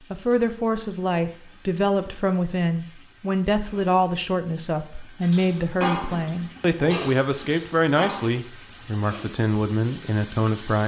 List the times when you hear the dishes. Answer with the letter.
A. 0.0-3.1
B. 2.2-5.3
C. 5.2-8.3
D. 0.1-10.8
C.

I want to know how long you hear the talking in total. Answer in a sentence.
The talking can be heard for 11 seconds in total.